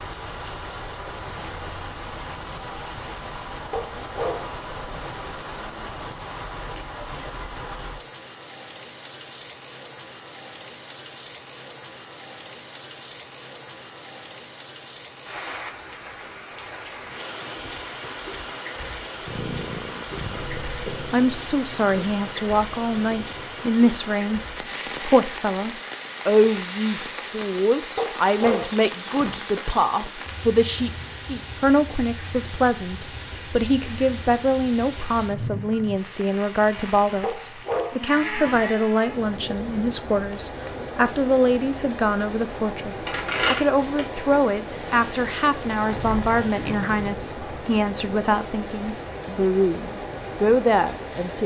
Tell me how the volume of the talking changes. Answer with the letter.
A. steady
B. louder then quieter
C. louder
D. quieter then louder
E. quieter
A.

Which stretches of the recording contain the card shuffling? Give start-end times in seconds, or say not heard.
43.0-44.4.